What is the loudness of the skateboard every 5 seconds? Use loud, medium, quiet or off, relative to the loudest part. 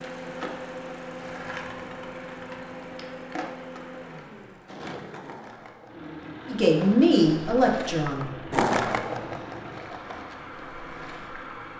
medium, loud, quiet.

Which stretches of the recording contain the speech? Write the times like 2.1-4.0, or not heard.
6.5-8.3.